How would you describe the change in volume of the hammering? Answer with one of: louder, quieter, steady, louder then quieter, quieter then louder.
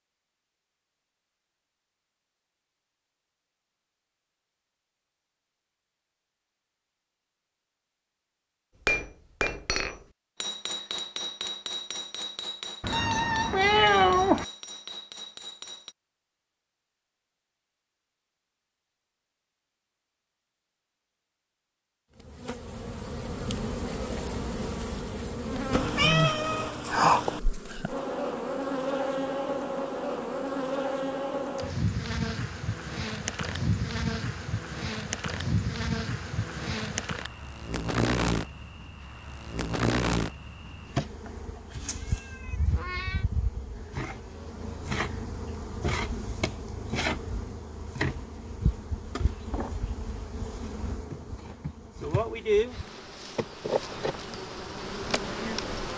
quieter.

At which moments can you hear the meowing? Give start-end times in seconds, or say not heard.
12.8-14.4, 25.7-27.4, 41.9-43.2.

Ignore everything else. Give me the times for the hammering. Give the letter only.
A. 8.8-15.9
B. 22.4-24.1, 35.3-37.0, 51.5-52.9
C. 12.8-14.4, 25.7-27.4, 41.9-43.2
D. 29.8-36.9
A.